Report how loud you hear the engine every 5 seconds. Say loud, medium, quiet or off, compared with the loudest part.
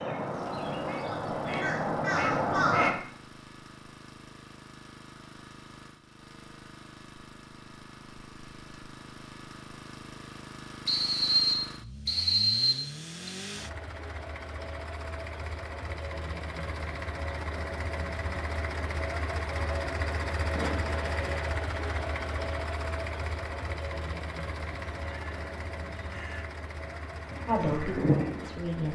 quiet, quiet, medium, loud, loud, medium.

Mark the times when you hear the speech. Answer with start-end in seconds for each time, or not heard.
27.4-28.9.